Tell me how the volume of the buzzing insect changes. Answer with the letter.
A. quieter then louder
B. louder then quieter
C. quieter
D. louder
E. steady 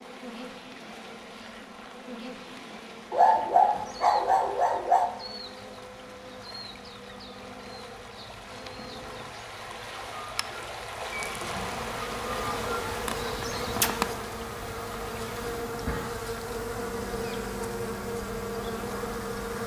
D.